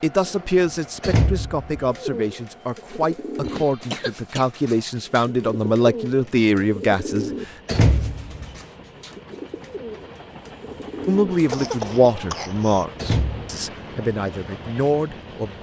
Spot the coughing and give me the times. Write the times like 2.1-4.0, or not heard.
3.4-4.5, 11.5-12.8.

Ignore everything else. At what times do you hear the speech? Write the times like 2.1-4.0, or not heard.
0.0-7.3, 11.1-15.5.